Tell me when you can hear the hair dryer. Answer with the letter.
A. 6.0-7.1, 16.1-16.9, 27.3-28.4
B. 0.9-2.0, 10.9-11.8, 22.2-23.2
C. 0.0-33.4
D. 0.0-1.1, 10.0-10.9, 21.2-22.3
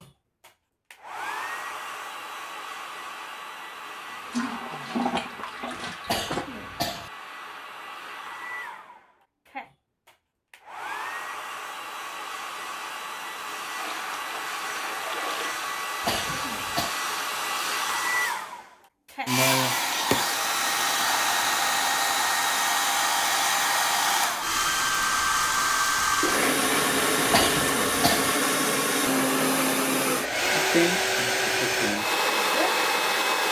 C.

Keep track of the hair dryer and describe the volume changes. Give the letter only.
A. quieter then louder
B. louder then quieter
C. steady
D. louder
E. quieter
D.